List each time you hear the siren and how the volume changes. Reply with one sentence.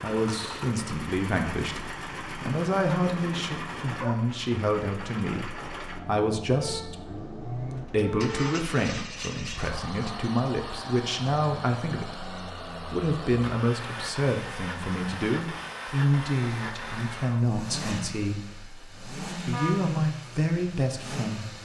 You can't hear the siren here.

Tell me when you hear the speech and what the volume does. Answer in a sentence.
The speech can be heard from 0.0 to 21.5 s, at a steady volume.